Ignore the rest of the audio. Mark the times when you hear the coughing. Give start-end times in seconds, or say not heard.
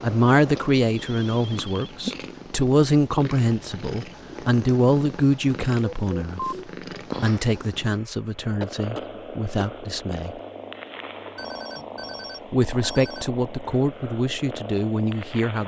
8.6-9.8.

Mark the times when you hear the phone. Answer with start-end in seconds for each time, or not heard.
0.9-1.9, 5.8-6.7, 11.3-13.2.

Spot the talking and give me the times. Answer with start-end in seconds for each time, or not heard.
0.0-6.5, 7.2-10.3, 12.5-15.6.